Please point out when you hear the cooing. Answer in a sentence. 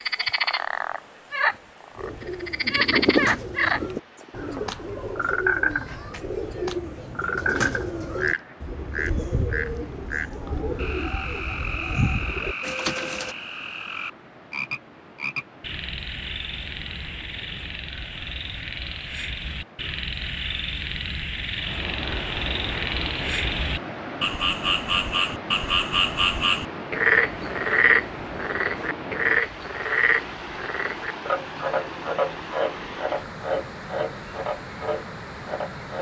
You can hear the cooing from 1.9 to 13.3 s.